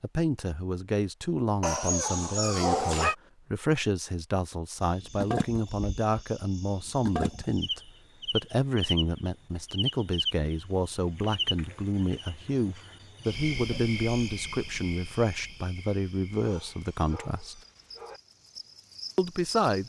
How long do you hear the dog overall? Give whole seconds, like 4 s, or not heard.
3 s.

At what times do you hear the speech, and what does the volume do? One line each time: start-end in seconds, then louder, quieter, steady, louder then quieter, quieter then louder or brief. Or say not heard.
0.0-17.6 steady
19.1-19.8 brief.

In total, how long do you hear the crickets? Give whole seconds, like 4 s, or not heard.
15 s.